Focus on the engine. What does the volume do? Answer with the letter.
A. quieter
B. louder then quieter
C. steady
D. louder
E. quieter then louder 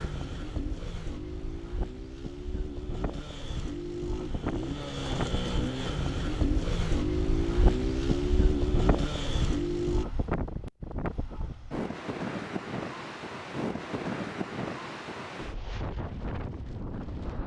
D.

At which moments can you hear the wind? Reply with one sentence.
You can hear the wind from 0.0 to 17.4 s.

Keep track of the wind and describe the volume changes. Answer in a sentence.
The volume of the wind goes up.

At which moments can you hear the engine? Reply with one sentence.
The engine can be heard from 0.0 to 10.1 s.